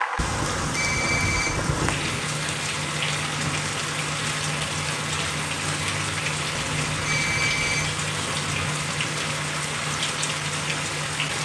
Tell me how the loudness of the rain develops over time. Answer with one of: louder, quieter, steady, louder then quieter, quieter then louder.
steady.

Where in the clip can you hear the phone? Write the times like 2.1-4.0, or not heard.
0.2-2.2, 6.5-8.0.